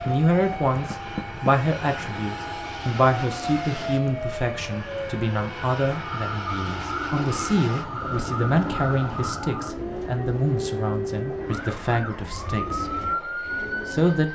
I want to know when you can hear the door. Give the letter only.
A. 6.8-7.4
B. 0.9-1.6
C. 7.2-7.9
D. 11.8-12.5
B.